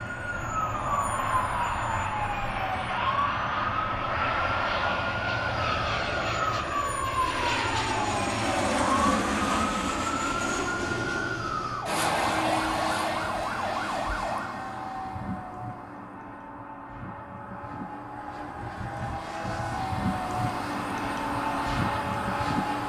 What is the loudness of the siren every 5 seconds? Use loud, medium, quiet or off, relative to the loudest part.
loud, loud, loud, off, off.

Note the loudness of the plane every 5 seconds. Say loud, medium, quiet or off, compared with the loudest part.
loud, loud, loud, medium, loud.